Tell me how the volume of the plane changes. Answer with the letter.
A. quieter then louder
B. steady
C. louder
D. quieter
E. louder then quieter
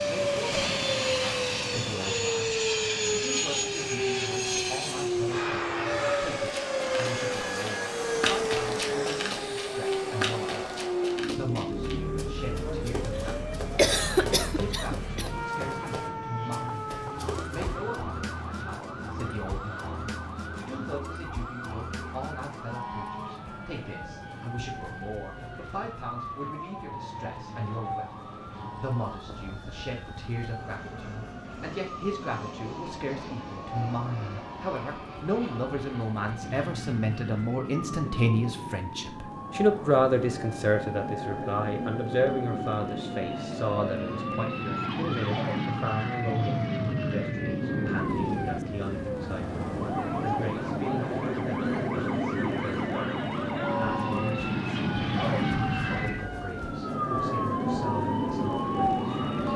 A.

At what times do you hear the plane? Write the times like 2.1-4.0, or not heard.
0.0-59.5.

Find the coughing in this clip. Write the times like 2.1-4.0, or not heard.
13.2-15.3.